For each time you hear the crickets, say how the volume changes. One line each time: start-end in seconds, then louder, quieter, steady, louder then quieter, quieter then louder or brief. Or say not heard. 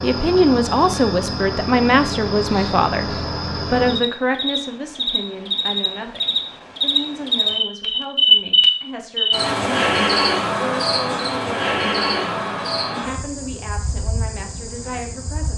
0.0-15.5 louder then quieter.